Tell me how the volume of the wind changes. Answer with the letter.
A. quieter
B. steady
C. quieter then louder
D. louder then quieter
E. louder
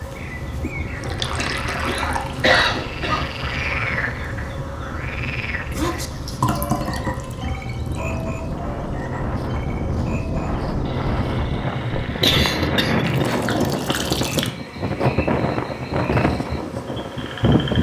E.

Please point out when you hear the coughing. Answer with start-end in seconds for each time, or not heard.
1.4-3.2, 11.9-13.2.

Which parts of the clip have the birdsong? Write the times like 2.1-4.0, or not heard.
not heard.